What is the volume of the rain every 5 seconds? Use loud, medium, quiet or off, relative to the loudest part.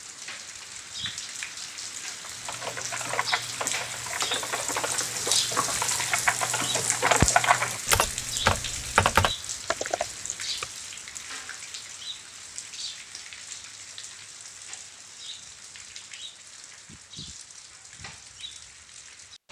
medium, loud, medium, quiet.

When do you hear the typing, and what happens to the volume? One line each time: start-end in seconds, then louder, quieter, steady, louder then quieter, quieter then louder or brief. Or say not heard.
2.3-10.7 louder.